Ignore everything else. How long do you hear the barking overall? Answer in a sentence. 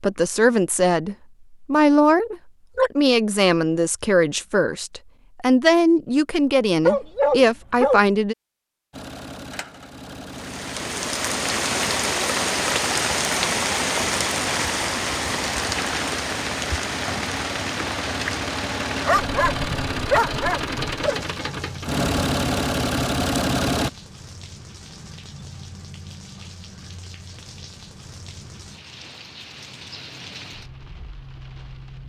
The barking can be heard for 3 seconds in total.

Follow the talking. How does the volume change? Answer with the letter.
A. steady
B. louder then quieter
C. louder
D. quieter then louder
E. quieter
A.